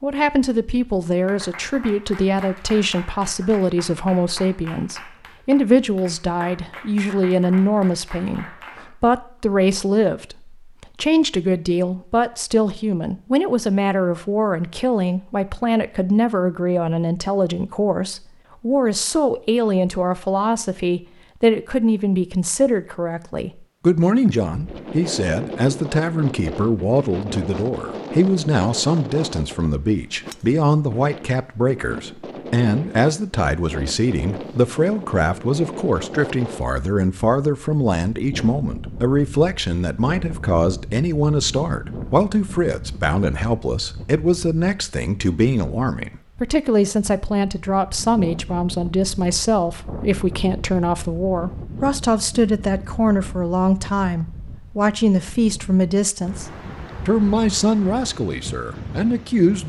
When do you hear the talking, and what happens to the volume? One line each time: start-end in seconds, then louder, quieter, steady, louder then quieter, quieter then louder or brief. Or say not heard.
0.0-59.6 steady.